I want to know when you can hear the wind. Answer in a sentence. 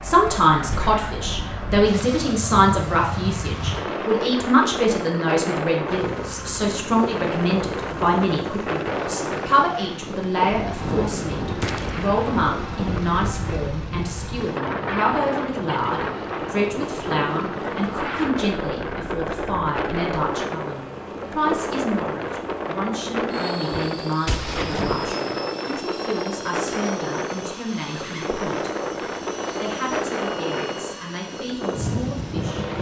You can hear the wind from 0.0 to 32.7 s.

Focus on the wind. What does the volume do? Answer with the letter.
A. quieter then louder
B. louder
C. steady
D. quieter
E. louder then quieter
C.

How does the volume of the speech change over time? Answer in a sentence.
The volume of the speech goes down.